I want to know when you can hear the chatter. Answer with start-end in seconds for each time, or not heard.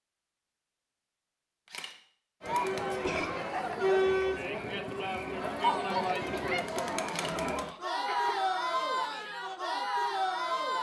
2.4-10.7.